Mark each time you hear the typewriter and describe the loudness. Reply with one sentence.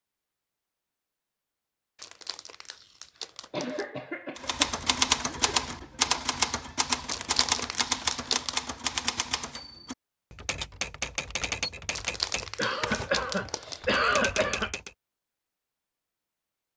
You can hear the typewriter from 4.3 to 14.9 s, getting quieter.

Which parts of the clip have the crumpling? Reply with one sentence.
The crumpling can be heard from 1.9 to 3.9 s, from 7.0 to 8.6 s and from 11.9 to 14.7 s.